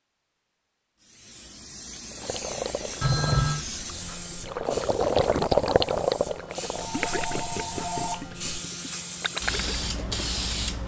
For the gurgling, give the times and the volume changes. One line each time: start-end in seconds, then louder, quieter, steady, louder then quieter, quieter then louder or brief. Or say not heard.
2.1-9.8 louder then quieter.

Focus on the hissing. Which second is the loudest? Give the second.
10 s.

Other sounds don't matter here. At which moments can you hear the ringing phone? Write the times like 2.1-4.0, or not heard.
3.0-3.6, 6.8-8.4.